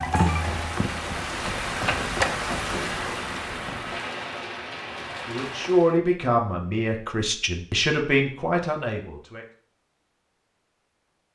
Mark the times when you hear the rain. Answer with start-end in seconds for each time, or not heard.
0.0-6.0.